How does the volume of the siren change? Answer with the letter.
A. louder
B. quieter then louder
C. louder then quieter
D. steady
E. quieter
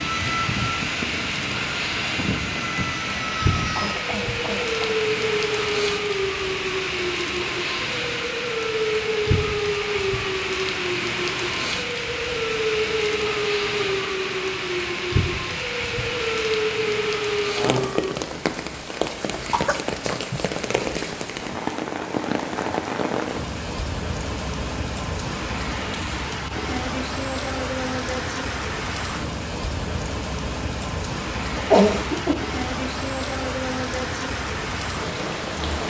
D.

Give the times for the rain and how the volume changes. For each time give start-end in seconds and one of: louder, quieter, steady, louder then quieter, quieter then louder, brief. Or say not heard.
0.0-35.8 steady.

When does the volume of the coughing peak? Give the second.
32 s.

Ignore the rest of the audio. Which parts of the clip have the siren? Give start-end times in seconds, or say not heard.
0.0-18.2.